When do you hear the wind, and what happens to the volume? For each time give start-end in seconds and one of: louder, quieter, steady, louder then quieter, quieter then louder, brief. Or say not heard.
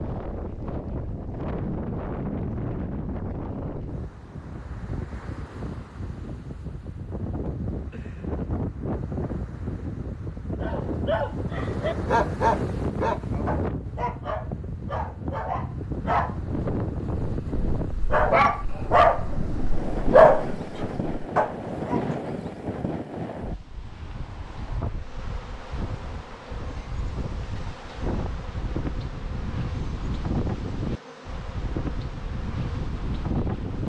0.0-33.8 steady.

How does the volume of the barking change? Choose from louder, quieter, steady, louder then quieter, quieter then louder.
quieter then louder.